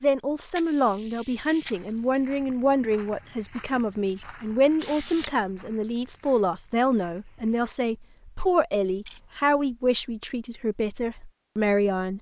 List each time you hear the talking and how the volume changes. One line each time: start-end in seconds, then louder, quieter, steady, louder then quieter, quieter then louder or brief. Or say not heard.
0.0-12.1 steady.